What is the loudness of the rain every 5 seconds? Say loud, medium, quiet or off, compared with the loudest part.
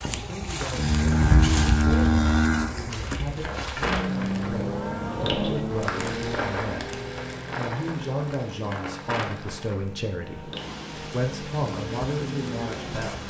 loud, loud, medium.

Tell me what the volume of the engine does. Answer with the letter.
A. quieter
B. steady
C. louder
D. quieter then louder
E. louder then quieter
D.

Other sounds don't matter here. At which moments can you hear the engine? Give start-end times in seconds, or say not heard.
3.8-13.2.